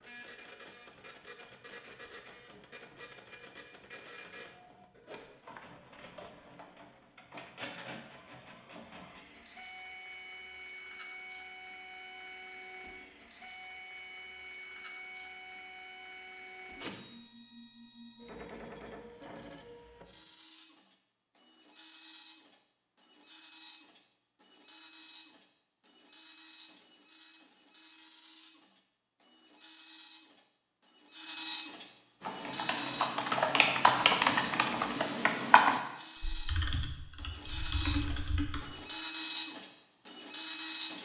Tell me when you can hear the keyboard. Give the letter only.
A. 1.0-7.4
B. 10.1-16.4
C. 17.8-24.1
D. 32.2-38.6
D.